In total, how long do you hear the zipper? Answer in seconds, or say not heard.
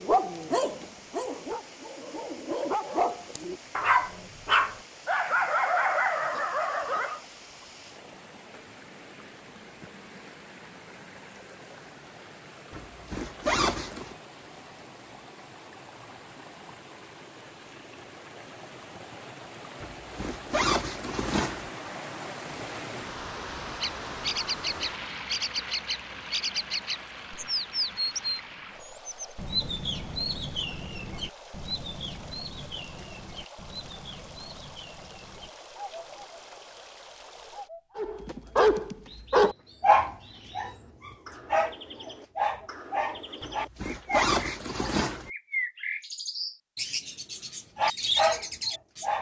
5 s.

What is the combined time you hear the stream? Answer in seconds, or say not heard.
38 s.